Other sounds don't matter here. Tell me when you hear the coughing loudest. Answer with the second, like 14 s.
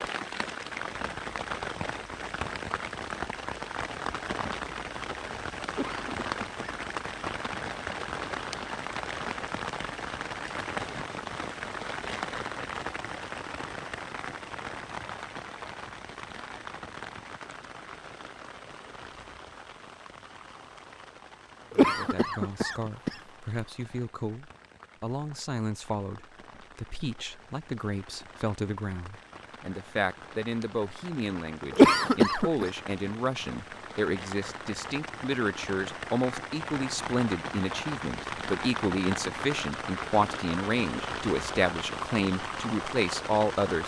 32 s.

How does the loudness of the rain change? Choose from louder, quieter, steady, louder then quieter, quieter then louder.
quieter then louder.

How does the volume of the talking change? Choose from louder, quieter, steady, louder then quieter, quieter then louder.
louder.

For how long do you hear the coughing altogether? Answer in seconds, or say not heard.
3 s.